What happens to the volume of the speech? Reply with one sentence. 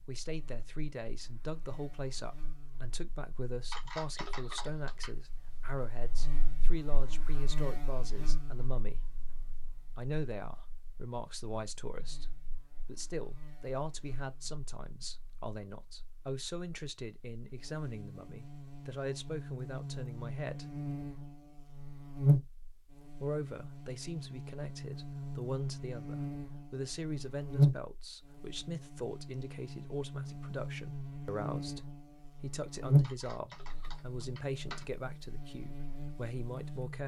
The volume of the speech stays about the same.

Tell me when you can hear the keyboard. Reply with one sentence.
The keyboard can be heard from 3.7 to 5.2 s and from 33.0 to 34.9 s.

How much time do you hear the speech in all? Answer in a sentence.
The speech can be heard for 34 seconds in total.